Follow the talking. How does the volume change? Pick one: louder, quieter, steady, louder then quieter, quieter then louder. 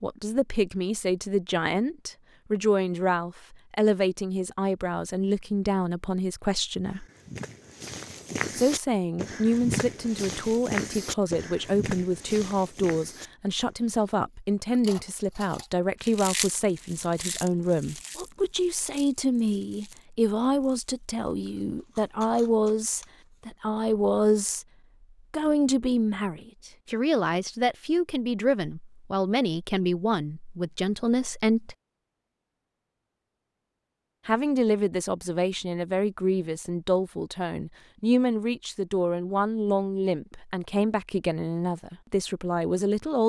steady.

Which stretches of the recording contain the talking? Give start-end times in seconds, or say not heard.
0.0-7.0, 8.6-24.6, 25.3-31.8, 34.2-43.2.